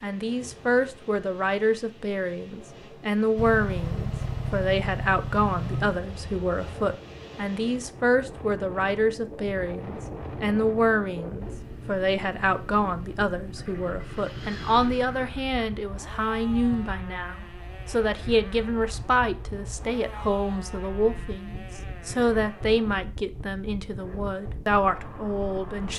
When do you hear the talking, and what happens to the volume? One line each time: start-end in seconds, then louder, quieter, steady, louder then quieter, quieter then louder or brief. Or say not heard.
0.0-25.9 steady.